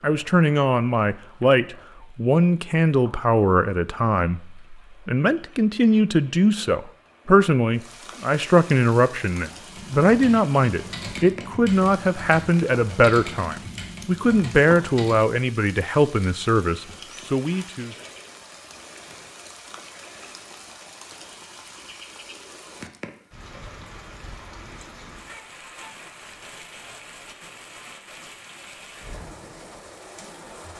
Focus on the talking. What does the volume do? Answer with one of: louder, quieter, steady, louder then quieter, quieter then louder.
steady.